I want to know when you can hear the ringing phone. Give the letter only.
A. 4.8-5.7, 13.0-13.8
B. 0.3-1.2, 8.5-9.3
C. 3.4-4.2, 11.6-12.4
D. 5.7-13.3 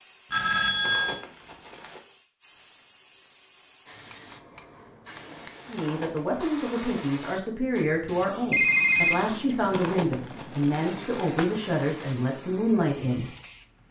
B.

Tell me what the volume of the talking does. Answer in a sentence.
The volume of the talking stays about the same.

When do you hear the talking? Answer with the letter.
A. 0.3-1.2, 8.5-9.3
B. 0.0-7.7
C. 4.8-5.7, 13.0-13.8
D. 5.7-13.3
D.